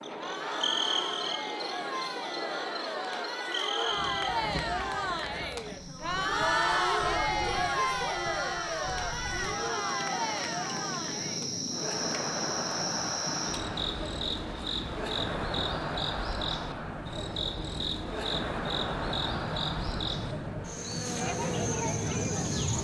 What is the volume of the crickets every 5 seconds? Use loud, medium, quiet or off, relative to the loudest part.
loud, medium, loud, loud, loud.